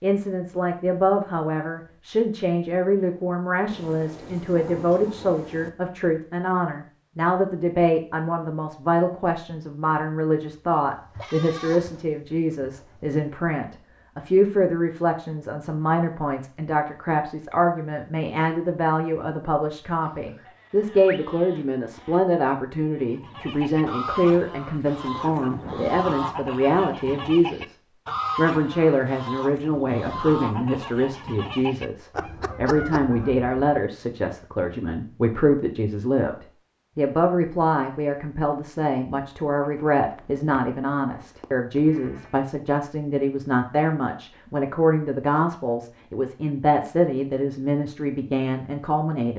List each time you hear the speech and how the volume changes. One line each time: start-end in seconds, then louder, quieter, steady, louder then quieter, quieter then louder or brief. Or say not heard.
0.0-27.8 steady
28.4-49.3 steady.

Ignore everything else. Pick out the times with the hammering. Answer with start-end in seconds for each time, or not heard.
not heard.